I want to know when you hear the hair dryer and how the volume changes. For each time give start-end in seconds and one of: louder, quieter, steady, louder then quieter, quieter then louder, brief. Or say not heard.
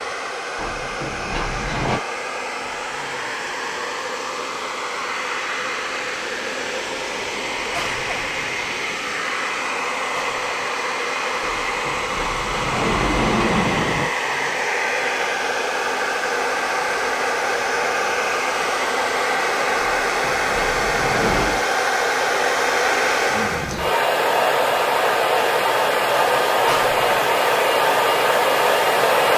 0.0-29.3 louder.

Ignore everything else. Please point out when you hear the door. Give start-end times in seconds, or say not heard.
0.6-2.0, 11.4-14.1, 19.8-21.6.